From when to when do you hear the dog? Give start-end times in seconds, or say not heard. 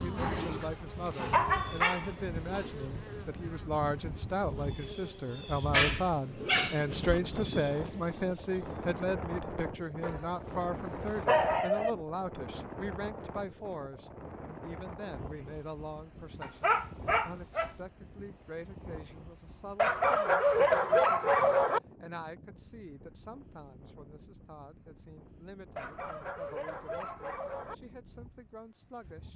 0.1-2.7, 5.7-7.2, 10.0-11.9, 16.4-17.7, 19.8-21.8, 25.8-27.8.